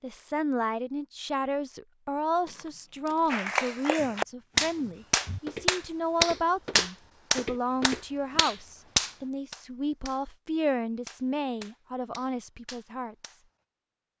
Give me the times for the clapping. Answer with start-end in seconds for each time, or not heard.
3.3-10.2, 11.1-13.4.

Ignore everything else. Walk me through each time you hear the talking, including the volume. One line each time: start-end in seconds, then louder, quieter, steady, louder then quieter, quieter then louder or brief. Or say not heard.
0.0-13.2 steady.